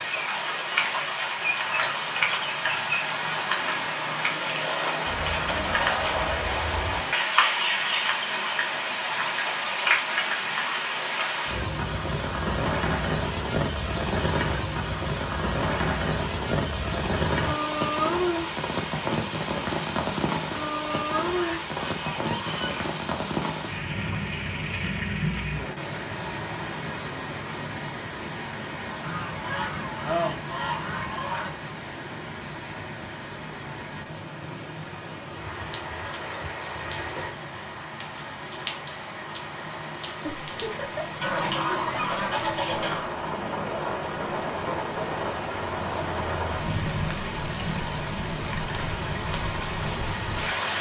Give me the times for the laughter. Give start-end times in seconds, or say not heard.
40.2-41.2.